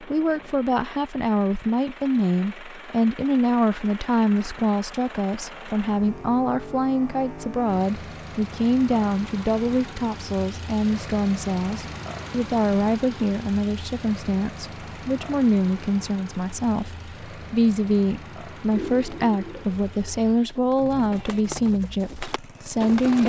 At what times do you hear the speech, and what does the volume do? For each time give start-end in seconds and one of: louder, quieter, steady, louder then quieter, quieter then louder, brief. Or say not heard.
0.0-23.2 steady.